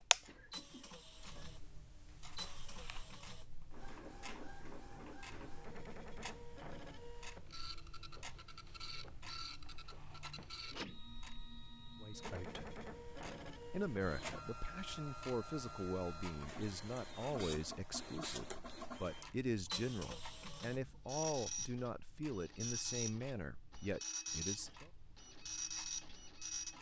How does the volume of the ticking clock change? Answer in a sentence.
The loudness of the ticking clock goes down.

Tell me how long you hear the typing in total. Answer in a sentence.
You can't hear the typing here.